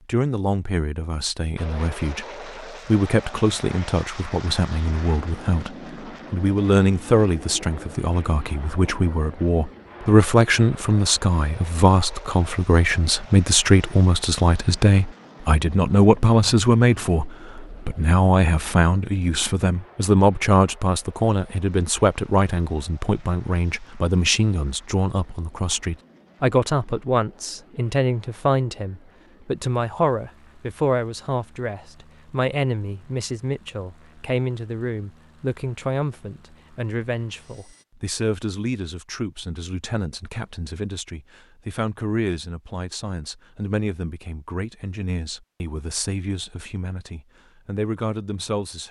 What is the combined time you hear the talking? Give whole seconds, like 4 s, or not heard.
49 s.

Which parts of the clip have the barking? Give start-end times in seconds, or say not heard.
not heard.